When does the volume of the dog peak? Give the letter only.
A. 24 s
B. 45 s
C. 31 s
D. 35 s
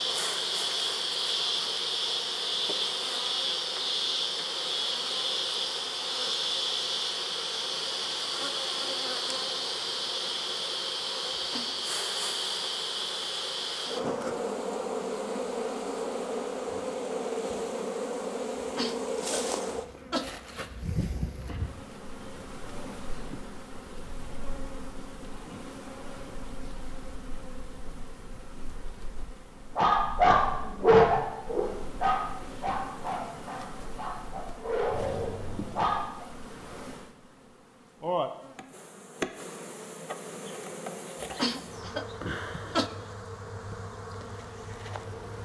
C.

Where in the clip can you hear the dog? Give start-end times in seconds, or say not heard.
29.8-36.2.